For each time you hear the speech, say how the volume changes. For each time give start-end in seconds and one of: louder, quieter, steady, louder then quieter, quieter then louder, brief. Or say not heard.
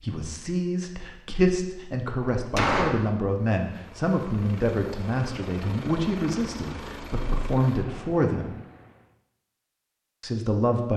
0.0-8.6 steady
10.2-10.9 brief.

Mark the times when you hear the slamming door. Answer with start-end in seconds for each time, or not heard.
2.2-3.1.